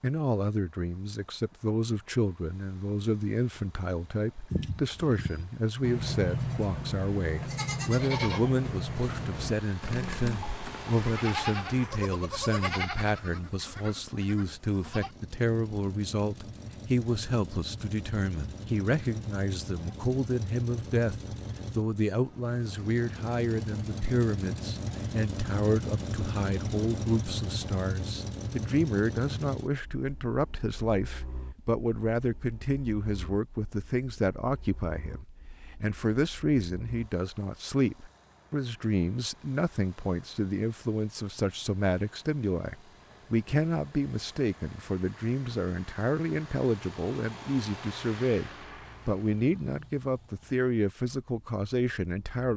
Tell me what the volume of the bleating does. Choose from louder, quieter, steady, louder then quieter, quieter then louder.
quieter.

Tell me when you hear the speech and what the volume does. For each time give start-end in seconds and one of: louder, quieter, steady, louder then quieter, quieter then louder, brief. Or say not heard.
0.0-52.5 steady.